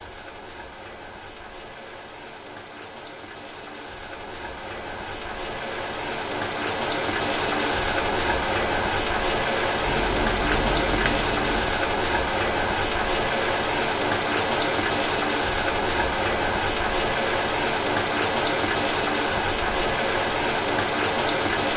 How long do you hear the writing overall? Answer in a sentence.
You can hear the writing for 2 seconds altogether.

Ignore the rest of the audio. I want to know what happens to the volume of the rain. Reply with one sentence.
The loudness of the rain goes up.